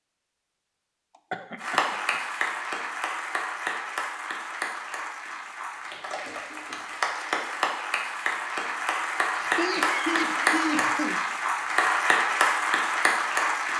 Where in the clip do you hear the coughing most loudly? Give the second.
10 s.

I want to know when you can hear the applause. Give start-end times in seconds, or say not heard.
1.6-13.7.